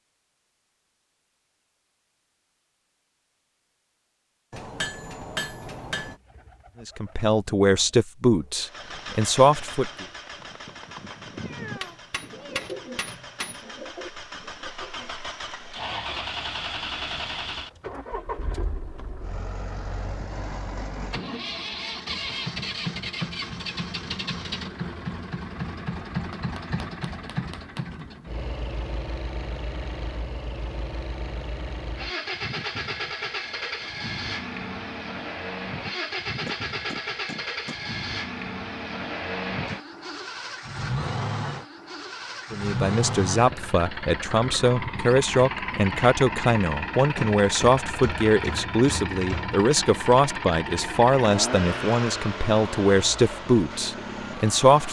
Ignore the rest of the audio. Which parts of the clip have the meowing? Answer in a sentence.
You can hear the meowing from 11.3 to 12.7 s.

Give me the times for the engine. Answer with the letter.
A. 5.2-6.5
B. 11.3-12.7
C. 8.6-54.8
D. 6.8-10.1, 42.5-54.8
C.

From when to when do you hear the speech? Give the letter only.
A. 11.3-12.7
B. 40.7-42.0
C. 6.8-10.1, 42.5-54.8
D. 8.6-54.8
C.